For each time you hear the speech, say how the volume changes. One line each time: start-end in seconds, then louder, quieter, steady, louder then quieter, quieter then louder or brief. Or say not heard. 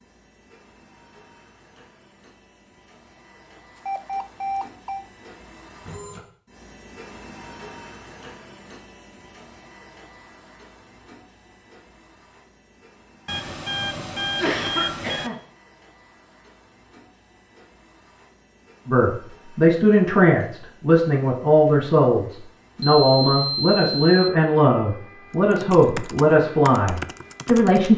18.9-27.9 steady.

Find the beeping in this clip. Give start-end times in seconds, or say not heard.
3.9-5.0, 13.2-15.3, 22.8-24.3.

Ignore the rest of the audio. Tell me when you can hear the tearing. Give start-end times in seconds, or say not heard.
not heard.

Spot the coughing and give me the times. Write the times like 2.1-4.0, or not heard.
14.3-15.4.